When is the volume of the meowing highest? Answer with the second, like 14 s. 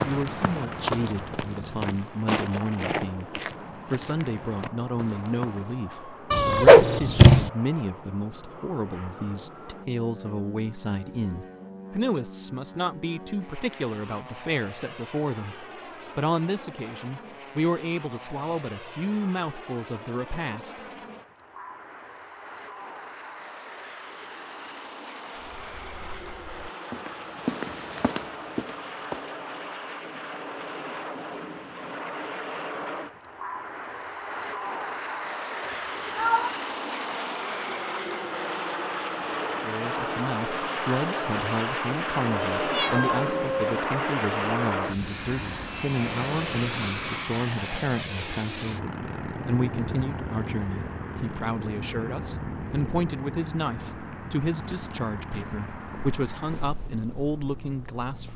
7 s.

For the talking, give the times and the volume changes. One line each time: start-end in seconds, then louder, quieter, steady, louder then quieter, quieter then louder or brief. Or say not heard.
0.0-20.8 steady
39.6-58.3 steady.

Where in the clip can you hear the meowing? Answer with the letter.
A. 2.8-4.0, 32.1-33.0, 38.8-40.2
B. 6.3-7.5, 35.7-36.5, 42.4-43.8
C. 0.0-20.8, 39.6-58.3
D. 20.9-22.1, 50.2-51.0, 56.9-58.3
B.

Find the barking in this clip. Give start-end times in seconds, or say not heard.
not heard.